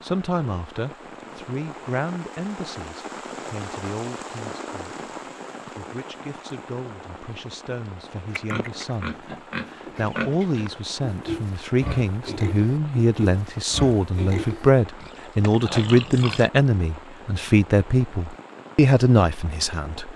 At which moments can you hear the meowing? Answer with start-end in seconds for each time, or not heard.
not heard.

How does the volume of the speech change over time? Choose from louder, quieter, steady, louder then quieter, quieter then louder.
quieter then louder.